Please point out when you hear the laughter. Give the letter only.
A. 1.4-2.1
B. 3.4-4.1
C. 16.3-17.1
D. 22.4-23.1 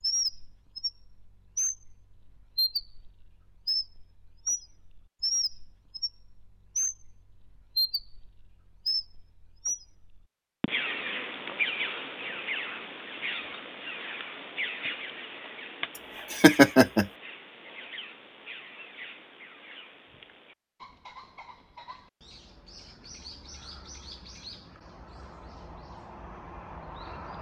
C.